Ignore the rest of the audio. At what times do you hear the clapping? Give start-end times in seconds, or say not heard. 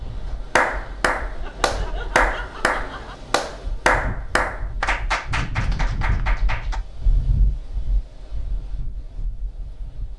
0.6-6.8.